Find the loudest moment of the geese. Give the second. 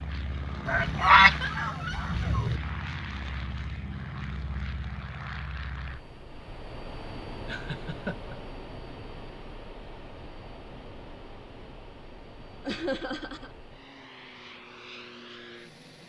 1 s.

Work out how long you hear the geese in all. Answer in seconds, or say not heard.
2 s.